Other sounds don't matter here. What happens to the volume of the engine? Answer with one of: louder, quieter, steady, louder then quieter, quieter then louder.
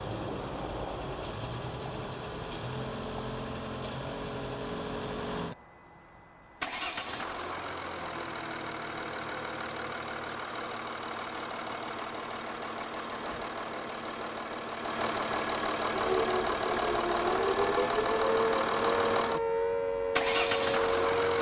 louder.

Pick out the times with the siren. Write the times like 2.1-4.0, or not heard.
15.9-21.3.